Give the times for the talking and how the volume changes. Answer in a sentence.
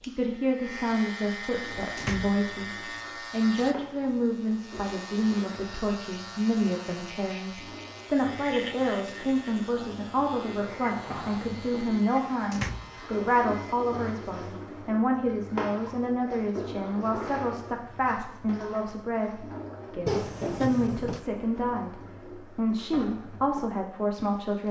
The talking can be heard from 0.0 to 24.6 s, at a steady volume.